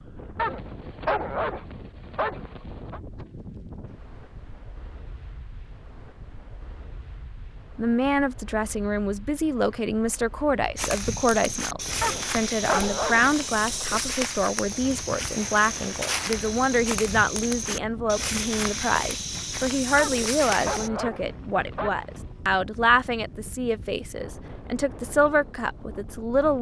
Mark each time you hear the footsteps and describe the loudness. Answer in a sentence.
The footsteps can be heard from 10.8 to 20.9 s, at a steady volume.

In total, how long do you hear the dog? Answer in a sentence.
The dog can be heard for 7 seconds in total.